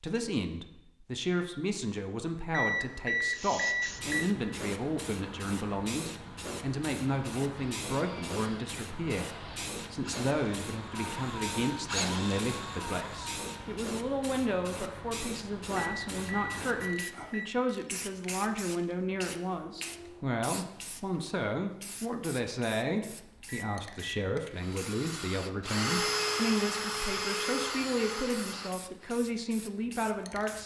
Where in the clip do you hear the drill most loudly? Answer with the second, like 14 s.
26 s.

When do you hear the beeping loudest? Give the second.
3 s.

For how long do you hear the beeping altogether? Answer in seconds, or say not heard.
4 s.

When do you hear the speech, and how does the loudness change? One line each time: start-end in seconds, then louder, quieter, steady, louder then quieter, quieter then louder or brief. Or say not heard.
0.0-30.6 steady.